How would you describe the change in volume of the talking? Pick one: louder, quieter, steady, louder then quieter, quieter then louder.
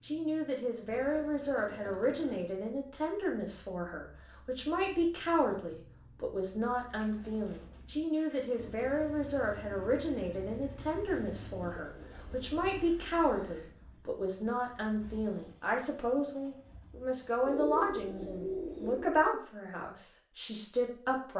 steady.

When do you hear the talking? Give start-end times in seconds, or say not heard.
0.0-21.3.